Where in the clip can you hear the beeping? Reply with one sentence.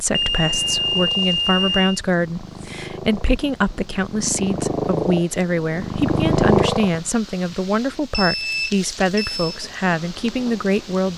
You can hear the beeping from 0.1 to 2.0 s and from 7.9 to 9.6 s.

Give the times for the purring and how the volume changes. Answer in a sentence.
You can hear the purring from 0.1 to 7.0 s, getting louder.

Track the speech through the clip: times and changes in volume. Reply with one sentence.
The speech can be heard from 0.0 to 11.1 s, at a steady volume.